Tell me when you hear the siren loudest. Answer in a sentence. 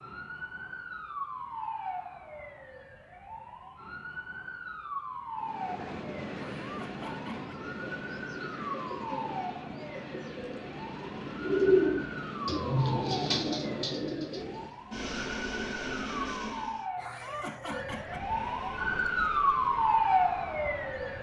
The loudest moment of the siren is at 20 seconds.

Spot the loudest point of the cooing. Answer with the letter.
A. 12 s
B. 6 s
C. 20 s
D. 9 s
A.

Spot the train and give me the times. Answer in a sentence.
You can hear the train from 5.3 to 16.9 s and from 17.9 to 21.1 s.